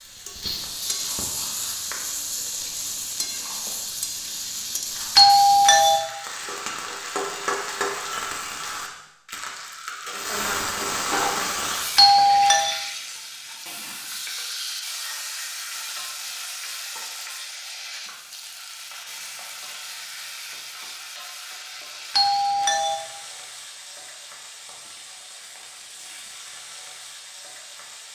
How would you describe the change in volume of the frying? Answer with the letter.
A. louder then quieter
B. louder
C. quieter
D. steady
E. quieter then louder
C.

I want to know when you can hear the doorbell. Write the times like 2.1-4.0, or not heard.
5.2-6.0, 11.9-12.7, 22.1-22.9.